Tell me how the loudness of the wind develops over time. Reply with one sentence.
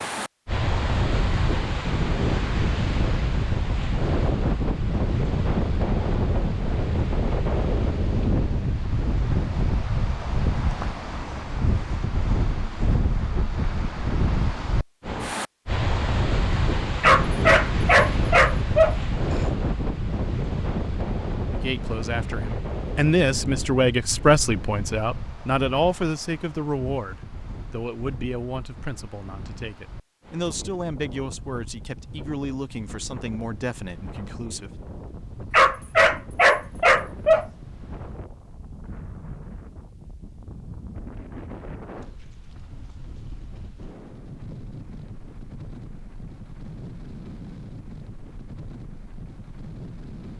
The loudness of the wind goes down.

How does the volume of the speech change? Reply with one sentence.
The volume of the speech goes down.